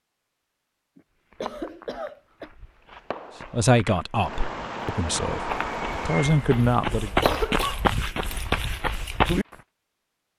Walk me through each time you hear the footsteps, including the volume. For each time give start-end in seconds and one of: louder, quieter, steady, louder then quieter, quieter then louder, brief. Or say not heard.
1.3-9.6 louder.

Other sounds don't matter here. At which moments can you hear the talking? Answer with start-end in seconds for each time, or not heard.
3.5-7.1.